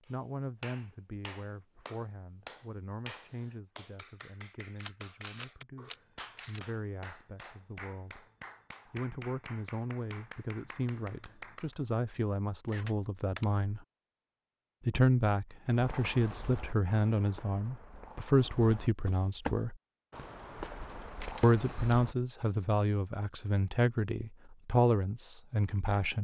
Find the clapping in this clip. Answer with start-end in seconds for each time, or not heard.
0.0-11.8.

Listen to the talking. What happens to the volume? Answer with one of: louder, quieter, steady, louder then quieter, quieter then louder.
louder.